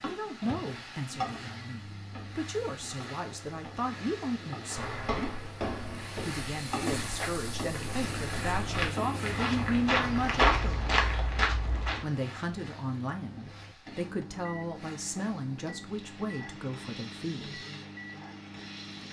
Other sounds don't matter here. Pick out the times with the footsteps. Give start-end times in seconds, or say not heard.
4.7-12.1.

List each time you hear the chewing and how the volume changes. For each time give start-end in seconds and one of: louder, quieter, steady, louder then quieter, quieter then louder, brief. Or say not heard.
not heard.